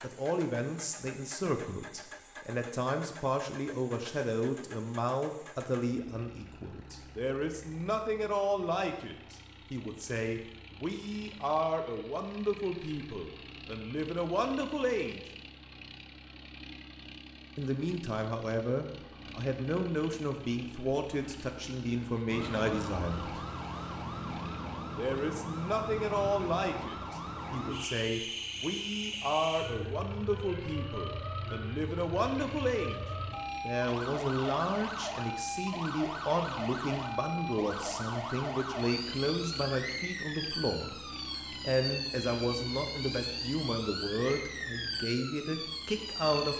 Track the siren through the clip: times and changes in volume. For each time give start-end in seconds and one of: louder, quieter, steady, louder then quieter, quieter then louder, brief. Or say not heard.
22.2-46.5 steady.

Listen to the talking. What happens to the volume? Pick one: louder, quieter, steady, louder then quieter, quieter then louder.
steady.